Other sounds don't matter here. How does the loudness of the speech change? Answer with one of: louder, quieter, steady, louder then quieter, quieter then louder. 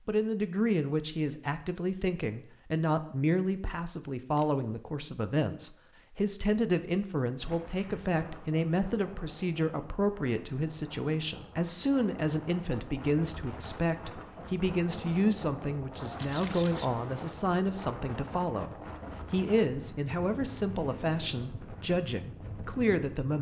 steady.